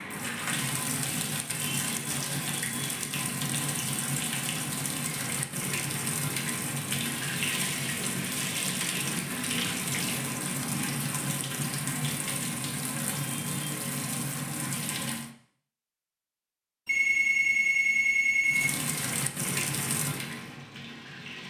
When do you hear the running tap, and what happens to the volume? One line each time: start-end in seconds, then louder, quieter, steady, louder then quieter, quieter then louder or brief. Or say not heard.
0.0-15.3 steady
18.4-21.4 brief.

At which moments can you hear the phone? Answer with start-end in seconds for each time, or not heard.
16.9-18.7.